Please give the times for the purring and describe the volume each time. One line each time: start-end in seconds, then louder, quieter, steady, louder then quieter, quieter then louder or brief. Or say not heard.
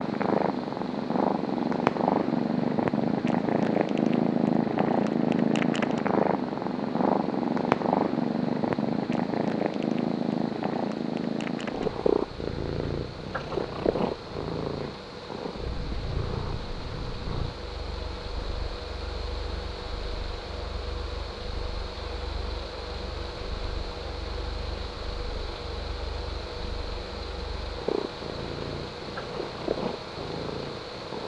0.0-31.2 quieter then louder.